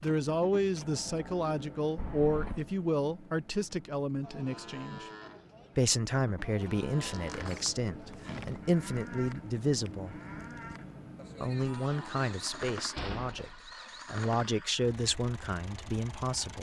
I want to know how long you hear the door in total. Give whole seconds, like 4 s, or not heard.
3 s.